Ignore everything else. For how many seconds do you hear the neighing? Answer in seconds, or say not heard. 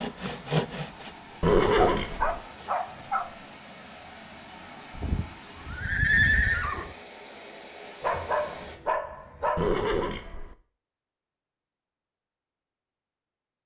4 s.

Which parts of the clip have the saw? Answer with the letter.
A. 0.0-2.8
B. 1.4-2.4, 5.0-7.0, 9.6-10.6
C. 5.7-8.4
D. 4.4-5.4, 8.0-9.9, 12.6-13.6
A.